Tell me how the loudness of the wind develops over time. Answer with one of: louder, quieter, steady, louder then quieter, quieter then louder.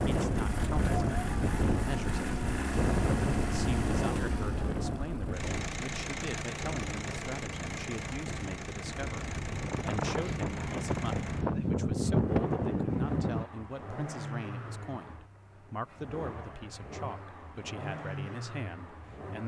quieter then louder.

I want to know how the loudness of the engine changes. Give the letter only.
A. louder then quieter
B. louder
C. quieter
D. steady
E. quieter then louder
C.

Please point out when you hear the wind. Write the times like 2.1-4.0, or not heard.
0.0-13.4.